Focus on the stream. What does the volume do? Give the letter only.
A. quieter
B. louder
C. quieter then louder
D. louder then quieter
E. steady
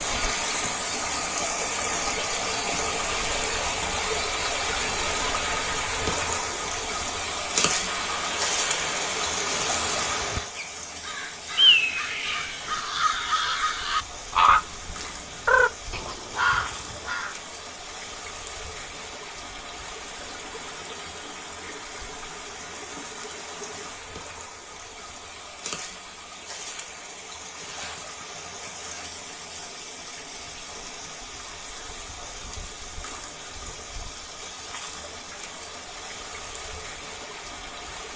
A.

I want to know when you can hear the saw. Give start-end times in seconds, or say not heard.
7.8-10.5, 27.6-29.1.